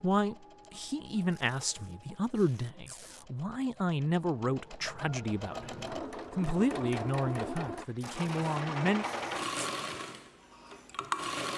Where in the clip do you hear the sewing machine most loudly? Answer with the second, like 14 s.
9 s.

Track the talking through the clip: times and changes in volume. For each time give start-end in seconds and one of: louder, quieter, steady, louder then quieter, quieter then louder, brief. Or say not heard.
0.0-9.1 steady.